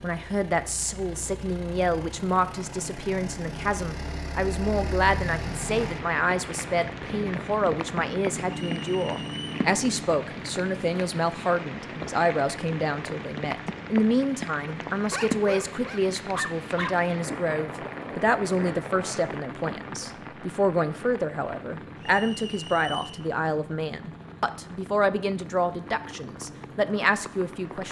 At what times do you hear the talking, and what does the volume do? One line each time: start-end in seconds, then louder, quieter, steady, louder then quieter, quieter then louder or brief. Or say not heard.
0.0-27.8 steady.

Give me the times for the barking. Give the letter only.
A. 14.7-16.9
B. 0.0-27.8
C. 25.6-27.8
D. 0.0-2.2
A.